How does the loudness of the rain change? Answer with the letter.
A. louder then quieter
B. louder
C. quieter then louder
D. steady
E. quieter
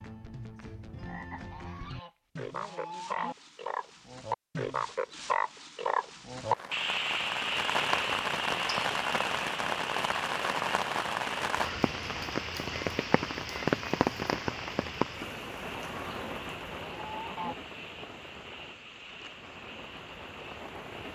E.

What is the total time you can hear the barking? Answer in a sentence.
The barking can't be heard in this clip.